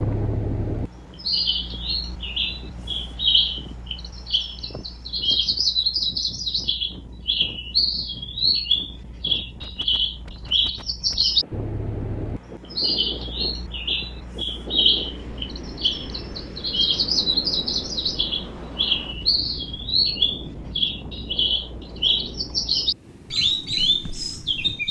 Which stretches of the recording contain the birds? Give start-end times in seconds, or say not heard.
0.0-24.8.